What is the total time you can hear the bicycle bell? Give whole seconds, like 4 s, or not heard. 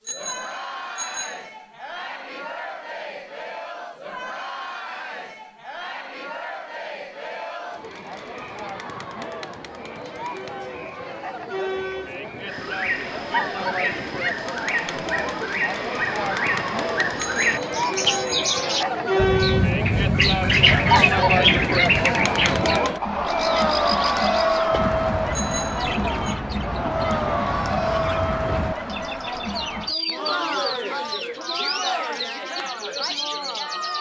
4 s.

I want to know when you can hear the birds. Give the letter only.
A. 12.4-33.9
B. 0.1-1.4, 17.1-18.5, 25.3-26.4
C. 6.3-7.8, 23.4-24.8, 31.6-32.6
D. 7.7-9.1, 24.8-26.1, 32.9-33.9
A.